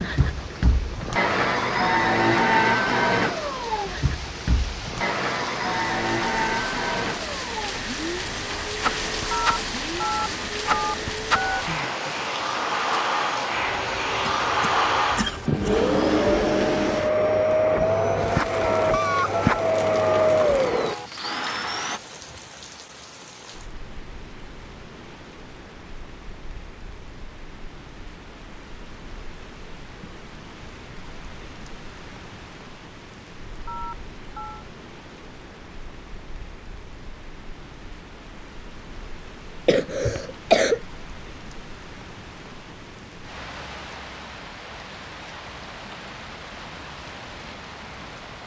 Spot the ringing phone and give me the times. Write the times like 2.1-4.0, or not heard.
9.3-11.7, 18.6-20.3, 33.6-34.6.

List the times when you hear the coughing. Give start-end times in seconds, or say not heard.
14.2-15.9, 39.6-40.8.